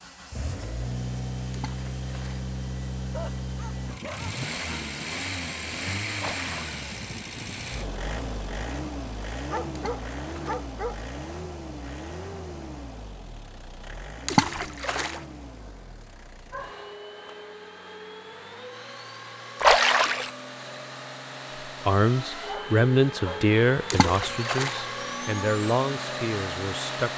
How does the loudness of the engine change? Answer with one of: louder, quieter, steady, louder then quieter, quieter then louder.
quieter then louder.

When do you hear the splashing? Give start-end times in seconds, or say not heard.
1.5-2.5, 6.2-6.8, 9.8-10.7, 14.2-15.2, 19.6-20.3, 23.9-24.8.